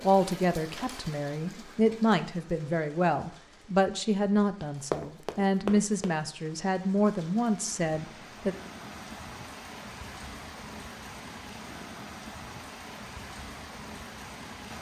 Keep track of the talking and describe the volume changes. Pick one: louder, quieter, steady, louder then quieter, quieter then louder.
steady.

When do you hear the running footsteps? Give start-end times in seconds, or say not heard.
4.9-6.2.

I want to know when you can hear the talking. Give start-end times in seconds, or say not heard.
0.0-8.6.